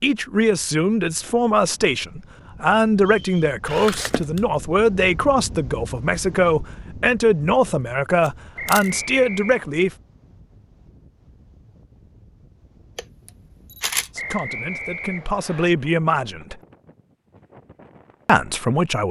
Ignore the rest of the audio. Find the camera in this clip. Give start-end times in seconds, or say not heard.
3.6-4.4, 8.2-8.9, 12.9-14.4.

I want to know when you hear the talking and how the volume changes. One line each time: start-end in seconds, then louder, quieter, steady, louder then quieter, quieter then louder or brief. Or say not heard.
0.0-9.9 steady
14.2-16.6 brief
18.2-19.0 brief.